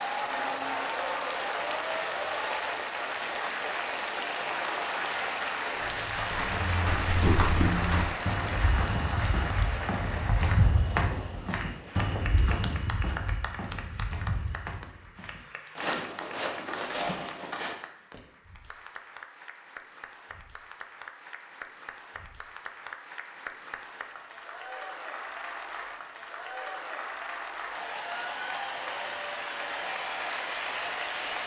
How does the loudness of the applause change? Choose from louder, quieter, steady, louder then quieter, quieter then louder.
quieter then louder.